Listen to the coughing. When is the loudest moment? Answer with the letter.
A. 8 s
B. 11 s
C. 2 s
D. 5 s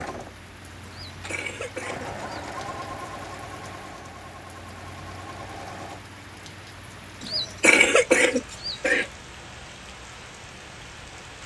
A.